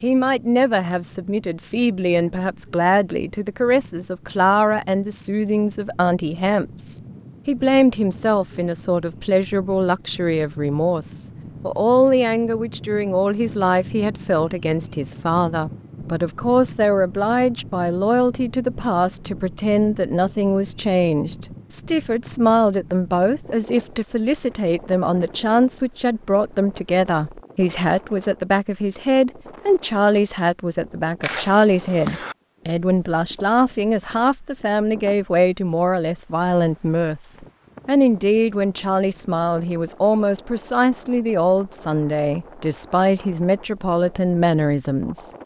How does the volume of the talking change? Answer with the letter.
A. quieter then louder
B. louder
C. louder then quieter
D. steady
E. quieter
D.